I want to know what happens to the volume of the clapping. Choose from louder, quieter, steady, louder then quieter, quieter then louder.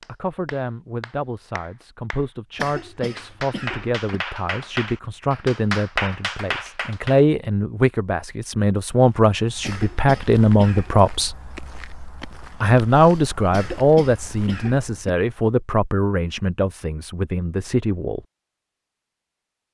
louder.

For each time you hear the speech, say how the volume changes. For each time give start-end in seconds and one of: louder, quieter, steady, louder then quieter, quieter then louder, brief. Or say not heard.
0.1-11.3 louder
12.6-18.2 quieter.